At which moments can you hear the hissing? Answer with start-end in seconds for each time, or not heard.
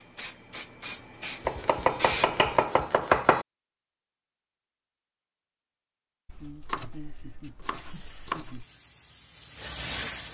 0.0-2.6, 7.6-10.2.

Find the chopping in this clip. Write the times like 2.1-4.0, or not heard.
1.4-3.5, 6.2-8.7.